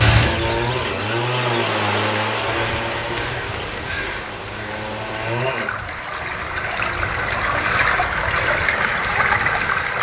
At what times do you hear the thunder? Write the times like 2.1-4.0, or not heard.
not heard.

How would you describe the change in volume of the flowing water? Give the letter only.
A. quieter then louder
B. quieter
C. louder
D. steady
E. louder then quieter
A.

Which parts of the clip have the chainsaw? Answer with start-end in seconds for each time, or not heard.
0.1-5.7.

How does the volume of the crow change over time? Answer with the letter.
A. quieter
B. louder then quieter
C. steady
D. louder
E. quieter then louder
E.